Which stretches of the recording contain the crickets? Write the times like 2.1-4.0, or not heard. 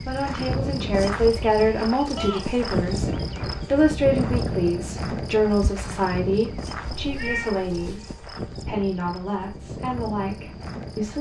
0.0-11.1.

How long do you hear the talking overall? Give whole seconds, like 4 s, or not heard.
11 s.